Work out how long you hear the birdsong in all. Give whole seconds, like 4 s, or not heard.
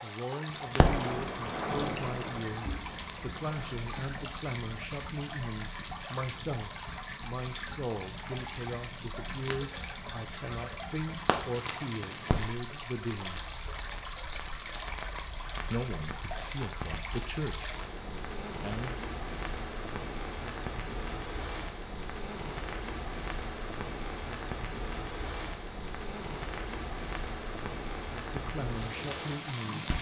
not heard.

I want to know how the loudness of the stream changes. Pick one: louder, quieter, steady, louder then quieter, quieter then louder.
steady.